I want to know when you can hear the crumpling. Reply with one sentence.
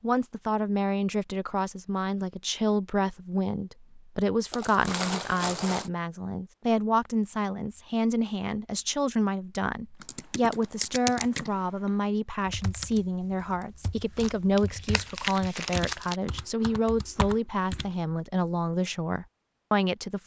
The crumpling can be heard from 4.5 to 5.9 s and from 14.2 to 16.2 s.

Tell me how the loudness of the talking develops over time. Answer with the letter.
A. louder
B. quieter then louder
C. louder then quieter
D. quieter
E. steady
E.